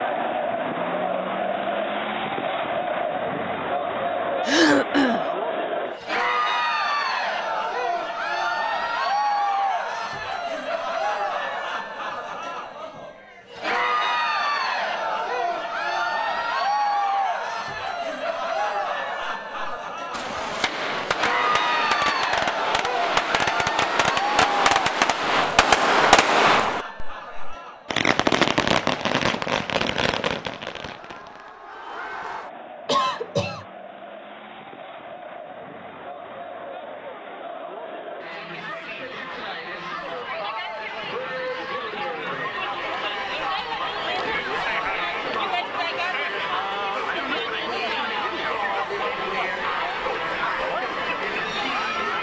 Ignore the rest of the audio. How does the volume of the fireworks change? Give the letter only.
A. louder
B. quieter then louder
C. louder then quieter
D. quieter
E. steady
C.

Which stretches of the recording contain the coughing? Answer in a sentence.
You can hear the coughing from 4.5 to 5.2 s and from 32.9 to 33.6 s.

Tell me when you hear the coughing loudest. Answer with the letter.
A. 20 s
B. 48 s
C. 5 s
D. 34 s
C.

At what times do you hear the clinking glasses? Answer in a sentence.
You can't hear the clinking glasses here.